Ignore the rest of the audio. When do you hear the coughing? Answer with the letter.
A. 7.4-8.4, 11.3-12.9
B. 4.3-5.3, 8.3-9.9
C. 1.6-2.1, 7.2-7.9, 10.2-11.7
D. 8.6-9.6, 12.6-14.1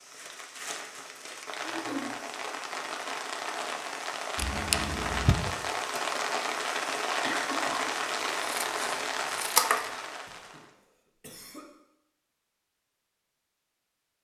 C.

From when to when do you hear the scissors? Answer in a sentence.
The scissors can be heard from 4.3 to 5.3 s and from 8.3 to 9.9 s.